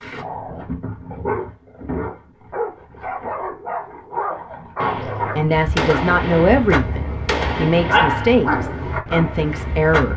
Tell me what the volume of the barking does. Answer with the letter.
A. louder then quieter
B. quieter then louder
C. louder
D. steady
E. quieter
C.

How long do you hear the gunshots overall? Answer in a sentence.
You can hear the gunshots for 4 seconds altogether.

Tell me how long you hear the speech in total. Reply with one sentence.
The speech can be heard for 5 seconds in total.